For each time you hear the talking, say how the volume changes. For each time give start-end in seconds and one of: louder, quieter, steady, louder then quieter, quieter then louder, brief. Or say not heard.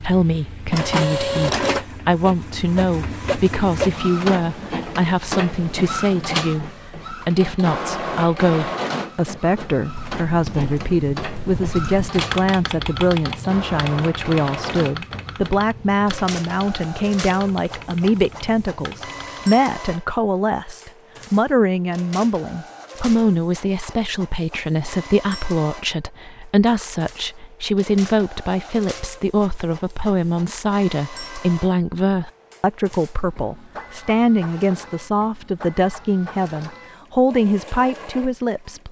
0.0-38.8 steady.